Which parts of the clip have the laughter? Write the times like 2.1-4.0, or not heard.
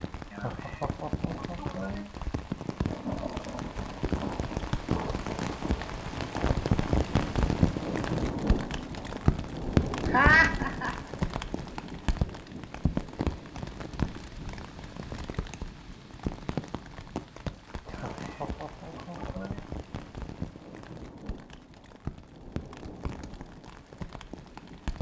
0.3-2.1, 10.1-10.9, 17.9-19.6.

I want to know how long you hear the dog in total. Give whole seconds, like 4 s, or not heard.
not heard.